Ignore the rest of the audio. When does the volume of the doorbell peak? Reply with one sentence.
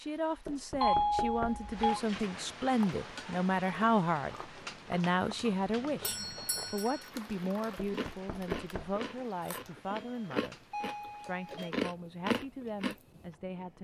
The volume of the doorbell peaks at 1 second.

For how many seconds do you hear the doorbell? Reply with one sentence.
The doorbell can be heard for 4 seconds in total.